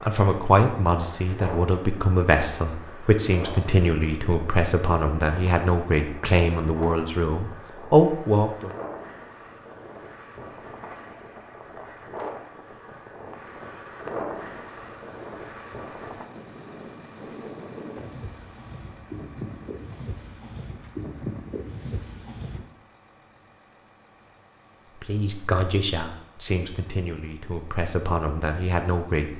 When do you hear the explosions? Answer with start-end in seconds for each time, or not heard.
not heard.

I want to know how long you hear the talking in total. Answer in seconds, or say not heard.
13 s.